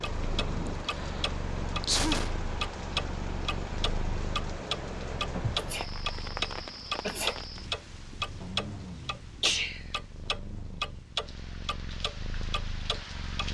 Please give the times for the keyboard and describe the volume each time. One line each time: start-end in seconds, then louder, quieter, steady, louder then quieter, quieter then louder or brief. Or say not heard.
not heard.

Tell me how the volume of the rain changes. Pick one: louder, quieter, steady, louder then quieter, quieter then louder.
quieter.